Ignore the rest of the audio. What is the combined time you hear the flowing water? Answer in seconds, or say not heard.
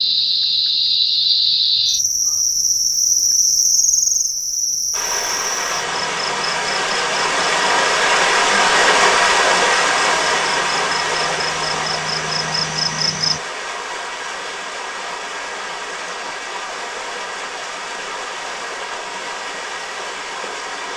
16 s.